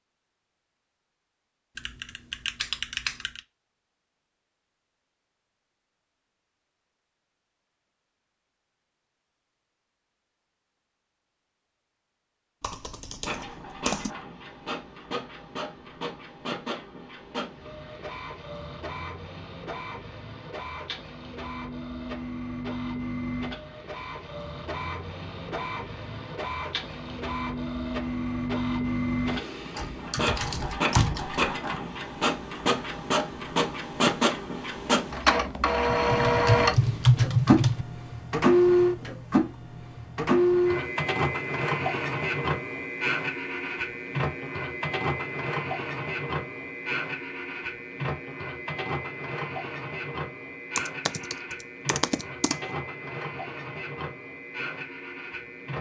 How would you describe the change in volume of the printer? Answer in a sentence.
The loudness of the printer goes up, then down.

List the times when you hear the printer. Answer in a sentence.
You can hear the printer from 13.2 to 55.7 s.